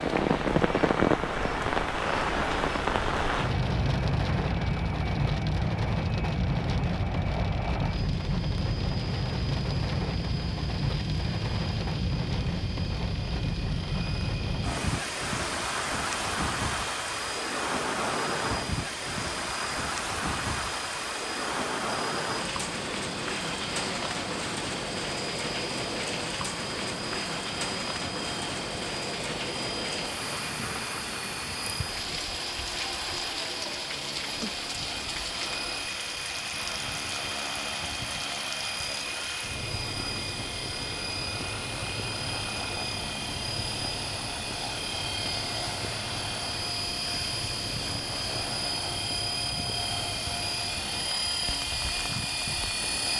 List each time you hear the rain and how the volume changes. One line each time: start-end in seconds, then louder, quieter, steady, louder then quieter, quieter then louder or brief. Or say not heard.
0.0-53.1 quieter.